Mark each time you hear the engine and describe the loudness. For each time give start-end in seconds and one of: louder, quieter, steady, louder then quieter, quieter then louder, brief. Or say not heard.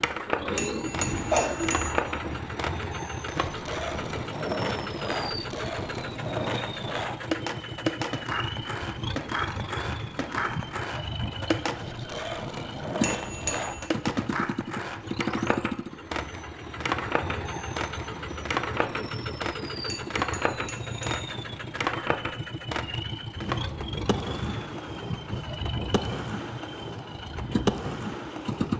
0.0-28.7 steady.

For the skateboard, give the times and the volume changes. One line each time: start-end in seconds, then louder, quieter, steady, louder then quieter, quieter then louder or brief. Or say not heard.
0.0-28.7 steady.